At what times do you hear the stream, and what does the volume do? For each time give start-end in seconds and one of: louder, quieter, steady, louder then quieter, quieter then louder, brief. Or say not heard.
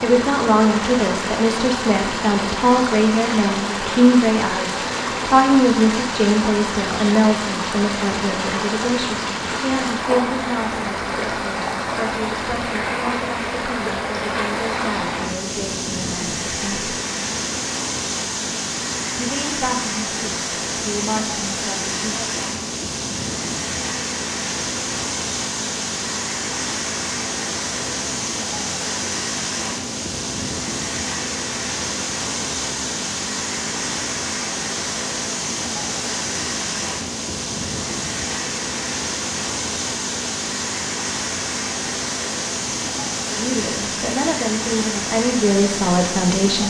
0.0-46.6 steady.